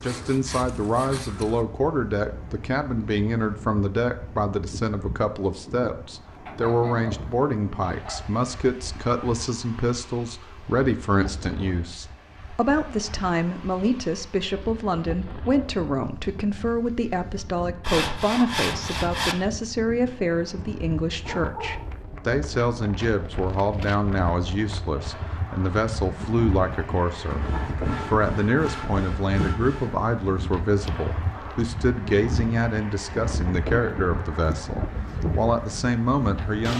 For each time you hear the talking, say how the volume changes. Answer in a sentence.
The talking can be heard from 0.0 to 27.4 s, at a steady volume; and from 28.1 to 36.7 s, at a steady volume.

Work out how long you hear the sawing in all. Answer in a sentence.
The sawing can be heard for 6 seconds in total.